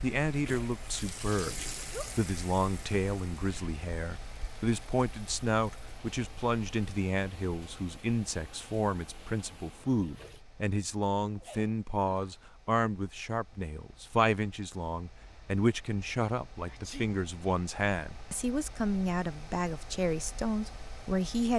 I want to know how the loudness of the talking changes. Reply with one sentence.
The loudness of the talking stays about the same.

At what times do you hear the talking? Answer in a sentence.
You can hear the talking from 0.0 to 21.5 s.